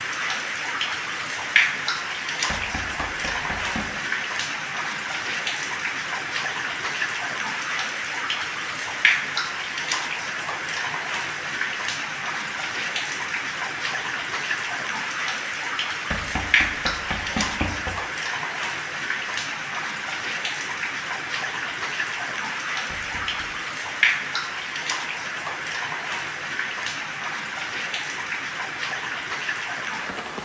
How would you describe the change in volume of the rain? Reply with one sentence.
The volume of the rain stays about the same.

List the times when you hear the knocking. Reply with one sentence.
The knocking can be heard from 2.5 to 3.9 s, from 16.1 to 17.9 s and from 22.9 to 23.5 s.